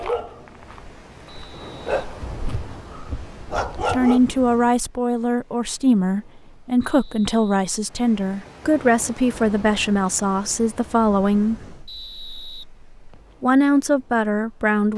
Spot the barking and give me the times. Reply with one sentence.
The barking can be heard from 0.0 to 4.2 s.